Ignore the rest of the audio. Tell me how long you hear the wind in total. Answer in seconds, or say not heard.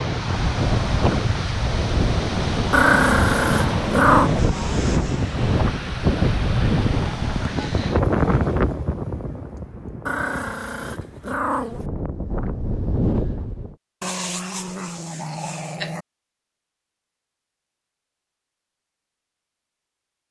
14 s.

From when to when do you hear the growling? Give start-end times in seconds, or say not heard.
2.7-4.3, 10.1-11.8, 14.0-16.1.